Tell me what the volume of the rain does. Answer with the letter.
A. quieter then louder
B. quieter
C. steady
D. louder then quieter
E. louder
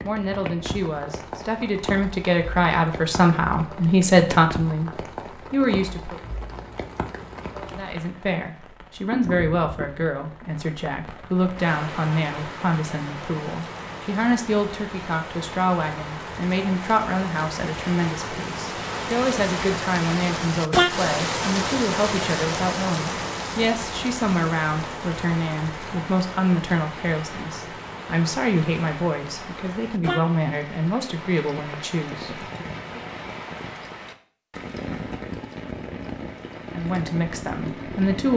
D.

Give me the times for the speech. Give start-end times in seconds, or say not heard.
0.0-6.2, 7.8-33.0, 36.7-38.3.